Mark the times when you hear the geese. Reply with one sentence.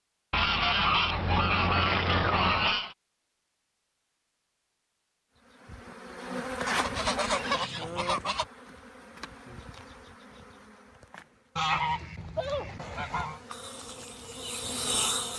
You can hear the geese from 0.3 to 3.0 s, from 6.7 to 8.4 s and from 11.6 to 13.4 s.